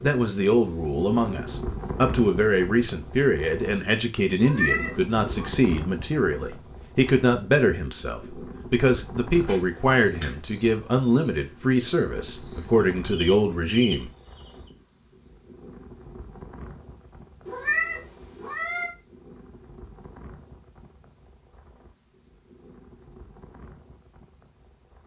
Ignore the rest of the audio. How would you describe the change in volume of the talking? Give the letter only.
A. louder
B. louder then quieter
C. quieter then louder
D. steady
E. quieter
D.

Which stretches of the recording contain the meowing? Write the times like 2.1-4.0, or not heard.
4.3-5.5, 17.4-18.9.